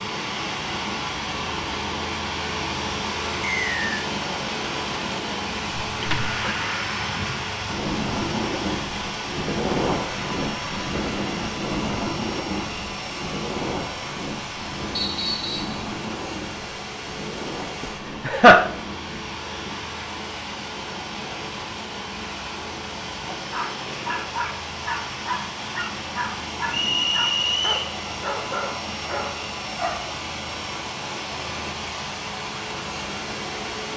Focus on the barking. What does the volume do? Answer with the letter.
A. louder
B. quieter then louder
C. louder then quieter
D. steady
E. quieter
D.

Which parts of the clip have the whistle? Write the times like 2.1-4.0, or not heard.
3.4-3.9, 14.9-15.8, 26.7-27.9.